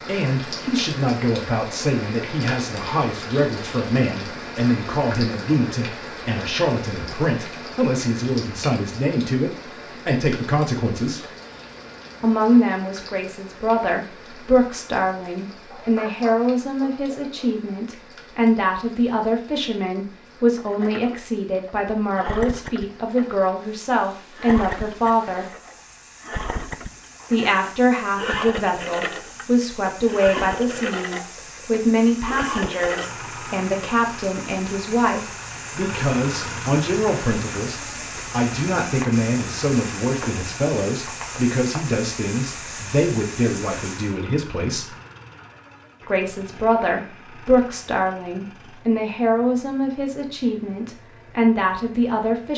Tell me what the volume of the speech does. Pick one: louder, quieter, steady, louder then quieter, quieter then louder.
steady.